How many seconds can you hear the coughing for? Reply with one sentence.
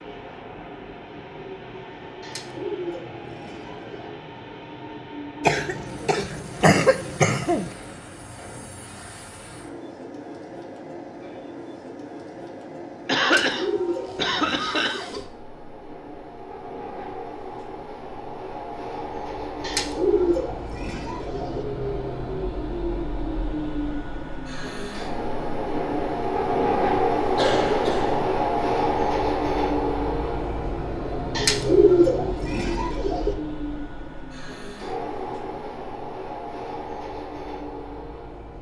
The coughing can be heard for 5 seconds in total.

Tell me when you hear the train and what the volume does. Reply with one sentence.
The train can be heard from 0.0 to 38.5 s, getting louder then quieter.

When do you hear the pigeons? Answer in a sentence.
The pigeons can be heard from 2.2 to 4.2 s, from 13.2 to 15.2 s, from 19.6 to 21.6 s and from 31.4 to 33.4 s.